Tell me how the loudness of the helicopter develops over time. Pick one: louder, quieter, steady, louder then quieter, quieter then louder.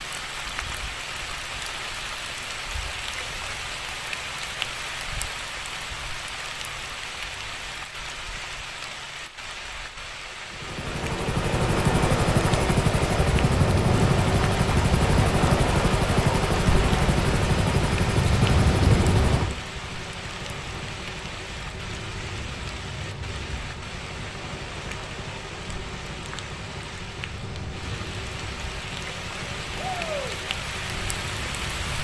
quieter.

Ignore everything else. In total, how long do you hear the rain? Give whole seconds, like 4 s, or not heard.
32 s.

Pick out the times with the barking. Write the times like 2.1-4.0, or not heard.
not heard.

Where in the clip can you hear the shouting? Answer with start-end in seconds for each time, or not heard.
29.8-30.4.